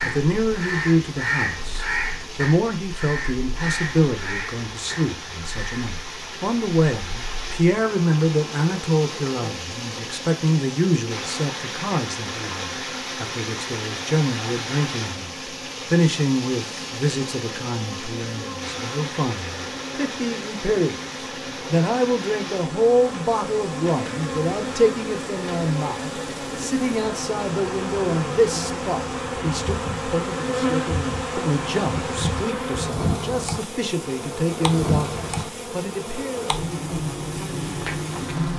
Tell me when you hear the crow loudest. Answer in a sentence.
The volume of the crow peaks at 1 second.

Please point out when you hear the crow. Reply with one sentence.
You can hear the crow from 0.0 to 5.9 s.